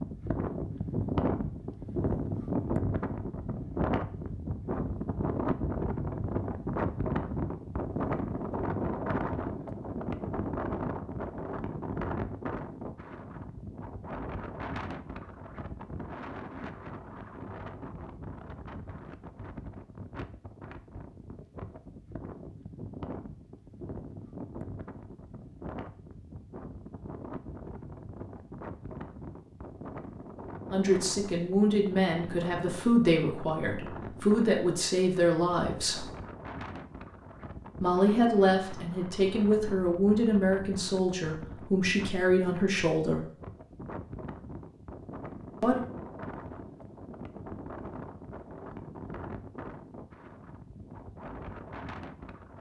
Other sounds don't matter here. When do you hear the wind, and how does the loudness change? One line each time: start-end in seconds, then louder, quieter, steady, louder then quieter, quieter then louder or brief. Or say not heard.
0.0-52.5 quieter.